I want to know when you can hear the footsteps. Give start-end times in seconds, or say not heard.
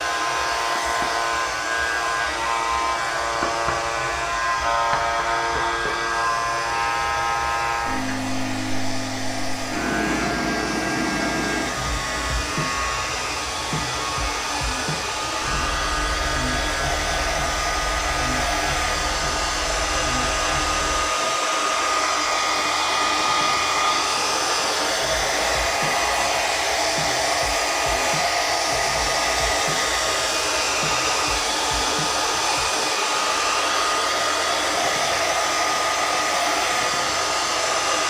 not heard.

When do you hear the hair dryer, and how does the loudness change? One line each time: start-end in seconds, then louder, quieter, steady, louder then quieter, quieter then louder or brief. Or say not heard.
0.0-38.0 louder.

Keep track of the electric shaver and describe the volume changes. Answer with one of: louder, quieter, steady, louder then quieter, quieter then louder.
quieter.